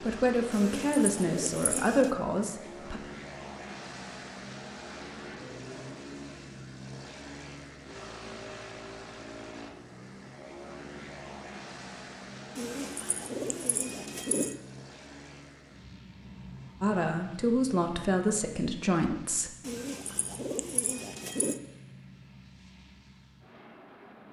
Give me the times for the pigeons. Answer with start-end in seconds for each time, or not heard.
0.5-2.1, 12.6-14.6, 19.6-21.6.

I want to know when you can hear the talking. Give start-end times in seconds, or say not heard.
0.0-3.0, 16.8-19.6.